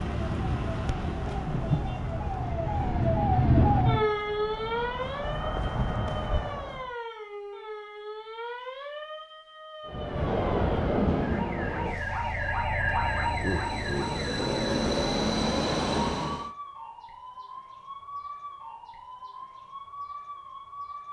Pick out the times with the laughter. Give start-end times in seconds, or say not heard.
13.4-14.9.